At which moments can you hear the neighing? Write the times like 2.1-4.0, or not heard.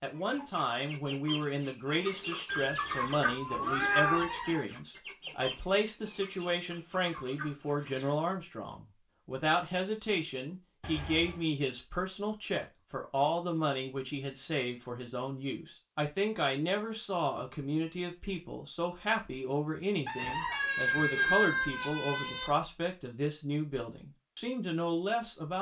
4.0-4.7, 20.1-21.4.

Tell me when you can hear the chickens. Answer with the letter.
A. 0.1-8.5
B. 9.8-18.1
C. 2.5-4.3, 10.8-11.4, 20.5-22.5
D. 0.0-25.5
A.